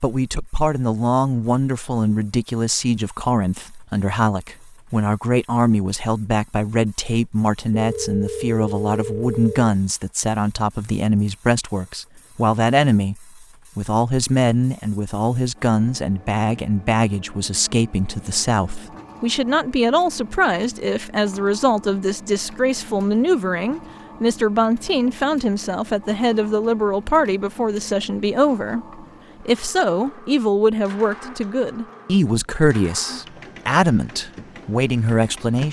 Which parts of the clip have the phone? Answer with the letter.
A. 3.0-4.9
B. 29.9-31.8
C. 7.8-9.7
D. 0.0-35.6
C.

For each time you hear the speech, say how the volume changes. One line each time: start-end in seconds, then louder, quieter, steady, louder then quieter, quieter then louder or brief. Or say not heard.
0.0-35.6 steady.